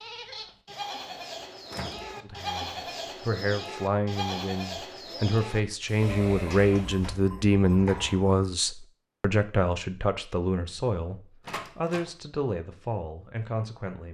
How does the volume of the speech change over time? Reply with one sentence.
The volume of the speech goes up, then down.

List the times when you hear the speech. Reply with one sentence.
You can hear the speech from 2.2 to 14.0 s.